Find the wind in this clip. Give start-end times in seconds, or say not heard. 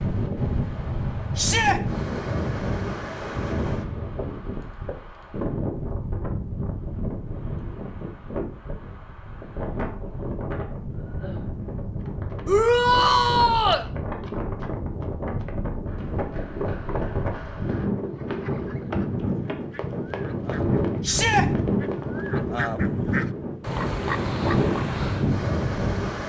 0.0-26.2.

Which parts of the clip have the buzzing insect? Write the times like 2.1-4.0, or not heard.
not heard.